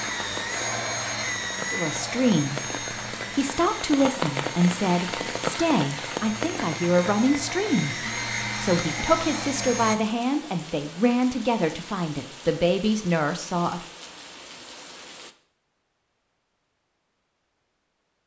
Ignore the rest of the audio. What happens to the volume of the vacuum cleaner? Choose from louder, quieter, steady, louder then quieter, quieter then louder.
quieter then louder.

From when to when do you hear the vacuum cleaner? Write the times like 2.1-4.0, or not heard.
0.0-9.9.